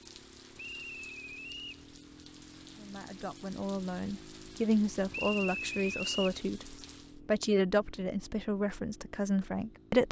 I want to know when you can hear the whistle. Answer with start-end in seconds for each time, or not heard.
0.6-1.9, 5.1-6.4.